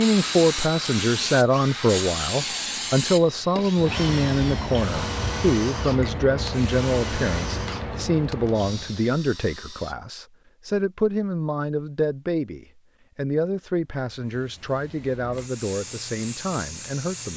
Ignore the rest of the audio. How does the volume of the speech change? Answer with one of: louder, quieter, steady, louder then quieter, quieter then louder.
quieter.